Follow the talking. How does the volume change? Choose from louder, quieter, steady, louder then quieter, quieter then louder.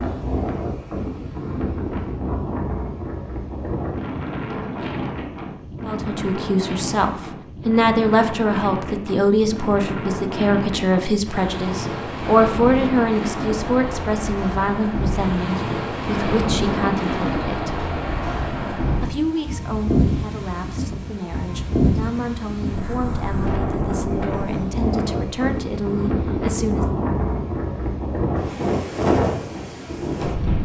quieter.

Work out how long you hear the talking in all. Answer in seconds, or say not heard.
20 s.